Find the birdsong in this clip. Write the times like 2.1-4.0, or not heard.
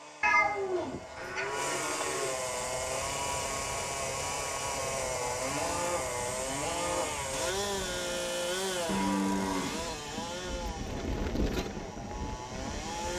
not heard.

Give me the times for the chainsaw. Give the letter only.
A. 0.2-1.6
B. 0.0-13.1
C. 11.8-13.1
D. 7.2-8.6
B.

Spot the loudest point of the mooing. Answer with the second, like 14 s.
9 s.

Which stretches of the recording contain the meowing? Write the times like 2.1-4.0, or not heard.
0.2-1.6.